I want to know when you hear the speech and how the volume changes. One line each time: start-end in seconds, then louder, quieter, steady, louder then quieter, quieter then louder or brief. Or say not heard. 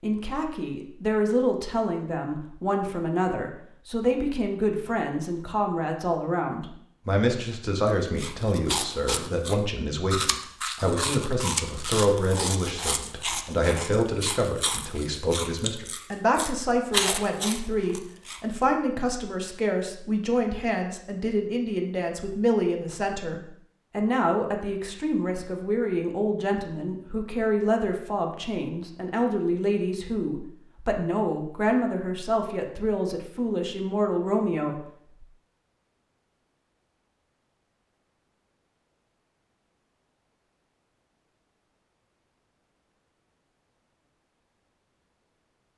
0.0-35.2 steady.